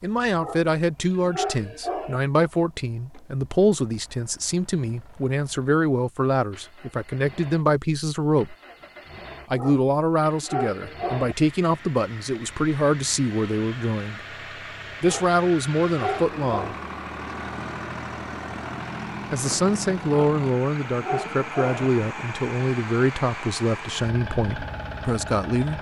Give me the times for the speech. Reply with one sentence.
The speech can be heard from 0.0 to 8.6 s, from 9.5 to 14.2 s, from 15.0 to 16.8 s and from 19.3 to 25.7 s.